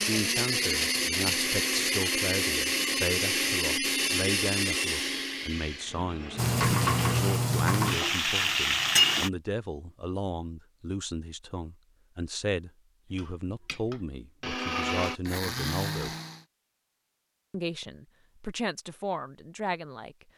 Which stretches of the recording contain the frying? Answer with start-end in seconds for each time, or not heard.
6.3-9.3.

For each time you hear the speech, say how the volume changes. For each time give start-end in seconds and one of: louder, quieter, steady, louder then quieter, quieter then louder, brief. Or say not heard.
0.1-16.1 steady
17.5-20.2 brief.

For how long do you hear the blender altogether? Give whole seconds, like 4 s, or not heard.
11 s.